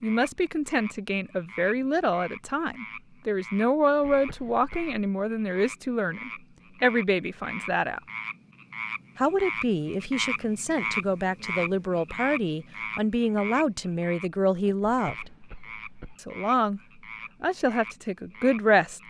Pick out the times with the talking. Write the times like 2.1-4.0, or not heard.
0.0-8.0, 9.2-15.3, 16.2-16.8, 17.4-19.0.